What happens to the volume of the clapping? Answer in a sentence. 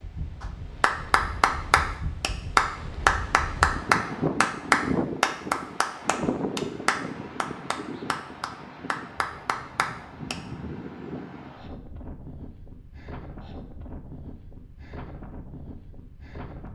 The loudness of the clapping goes down.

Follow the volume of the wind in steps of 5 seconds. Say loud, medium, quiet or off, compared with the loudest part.
loud, loud, medium, medium.